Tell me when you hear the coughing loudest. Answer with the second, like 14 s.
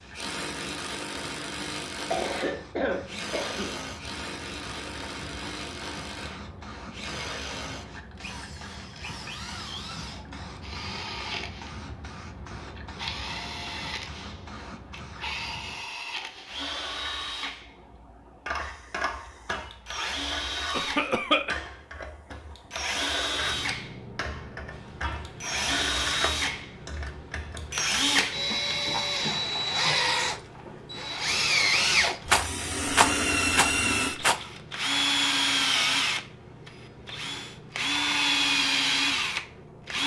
21 s.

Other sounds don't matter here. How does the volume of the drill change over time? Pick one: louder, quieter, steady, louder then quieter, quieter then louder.
louder.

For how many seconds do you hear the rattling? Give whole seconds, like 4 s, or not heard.
2 s.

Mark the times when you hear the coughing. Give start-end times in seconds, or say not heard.
2.1-3.8, 20.7-21.6.